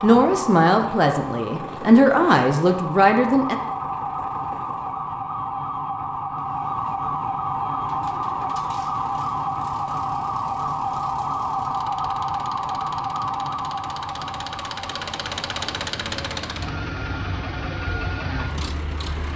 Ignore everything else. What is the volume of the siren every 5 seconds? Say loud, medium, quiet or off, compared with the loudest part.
loud, loud, loud, quiet.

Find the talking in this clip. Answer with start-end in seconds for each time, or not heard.
0.0-3.5.